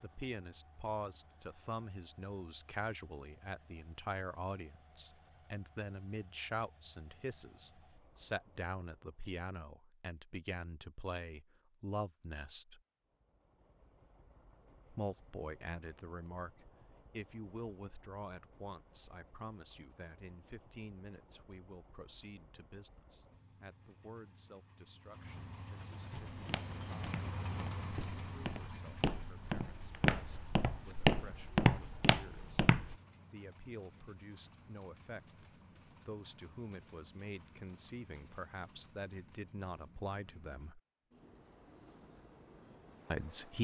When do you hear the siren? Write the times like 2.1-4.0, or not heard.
not heard.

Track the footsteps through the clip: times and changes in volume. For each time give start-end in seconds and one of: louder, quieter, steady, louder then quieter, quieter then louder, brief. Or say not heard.
26.1-33.0 louder.